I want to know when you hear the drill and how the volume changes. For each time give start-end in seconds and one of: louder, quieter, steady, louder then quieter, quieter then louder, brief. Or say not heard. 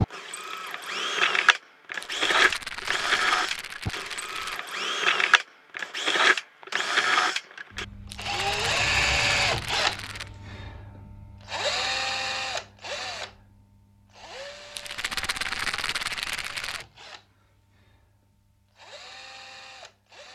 0.0-20.3 quieter.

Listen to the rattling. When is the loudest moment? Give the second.
16 s.